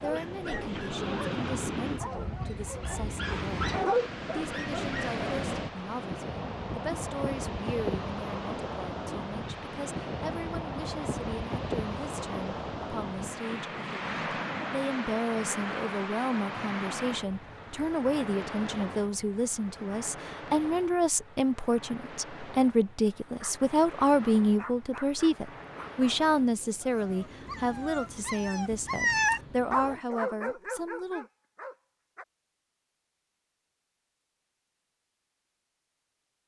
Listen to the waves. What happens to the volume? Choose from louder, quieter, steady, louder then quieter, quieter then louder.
quieter.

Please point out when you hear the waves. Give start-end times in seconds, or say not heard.
0.0-30.0.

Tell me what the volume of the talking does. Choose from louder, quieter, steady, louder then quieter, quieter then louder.
louder.